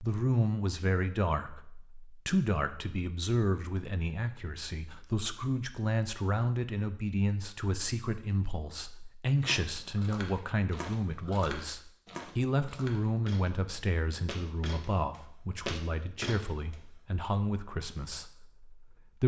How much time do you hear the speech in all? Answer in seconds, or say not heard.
19 s.